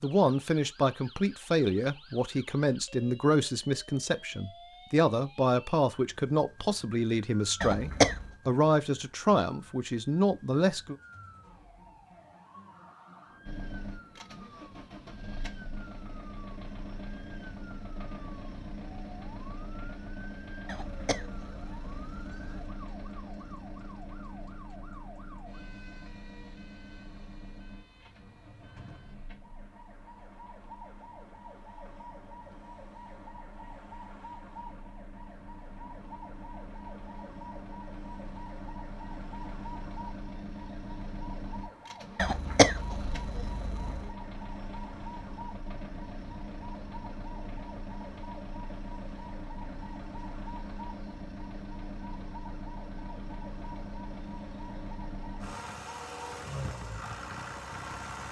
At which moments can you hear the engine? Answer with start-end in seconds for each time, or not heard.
13.4-58.2.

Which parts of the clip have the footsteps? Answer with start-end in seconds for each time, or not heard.
not heard.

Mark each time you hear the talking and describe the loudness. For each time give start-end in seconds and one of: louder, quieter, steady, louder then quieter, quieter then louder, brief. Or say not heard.
0.0-10.9 steady.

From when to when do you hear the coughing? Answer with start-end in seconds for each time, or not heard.
7.6-8.3, 20.6-22.6, 42.1-44.1.